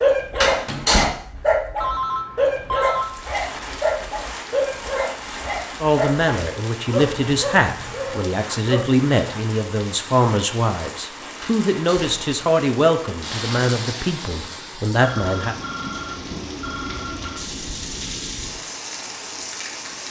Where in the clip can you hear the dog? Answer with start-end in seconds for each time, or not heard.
0.0-8.8.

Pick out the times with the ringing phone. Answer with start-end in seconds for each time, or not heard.
1.8-3.1, 15.0-17.4.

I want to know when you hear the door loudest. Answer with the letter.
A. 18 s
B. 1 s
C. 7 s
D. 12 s
B.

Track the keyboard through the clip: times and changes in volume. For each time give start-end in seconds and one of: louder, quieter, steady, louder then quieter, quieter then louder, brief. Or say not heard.
not heard.